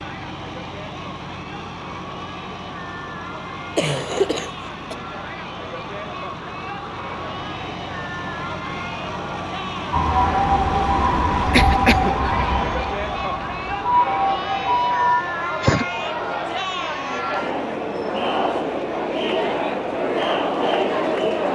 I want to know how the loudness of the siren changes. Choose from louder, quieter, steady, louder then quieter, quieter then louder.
quieter then louder.